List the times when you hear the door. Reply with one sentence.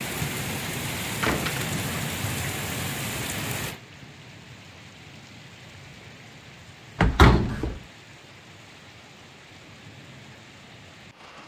You can hear the door from 1.2 to 1.8 s and from 7.0 to 7.8 s.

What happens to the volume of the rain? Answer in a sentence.
The loudness of the rain goes down.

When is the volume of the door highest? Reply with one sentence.
The loudest moment of the door is at 7 seconds.